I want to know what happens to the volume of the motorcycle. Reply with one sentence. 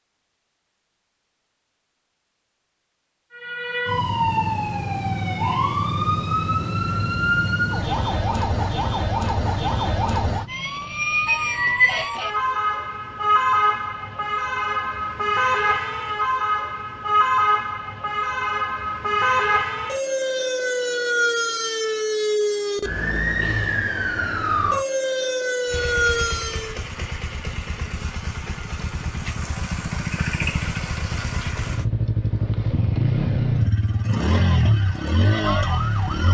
The volume of the motorcycle goes up.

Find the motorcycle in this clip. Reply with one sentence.
The motorcycle can be heard from 25.6 to 36.2 s.